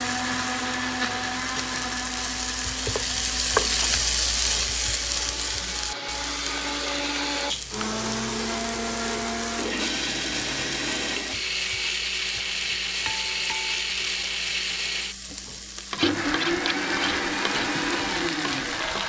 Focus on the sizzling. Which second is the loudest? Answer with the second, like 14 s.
4 s.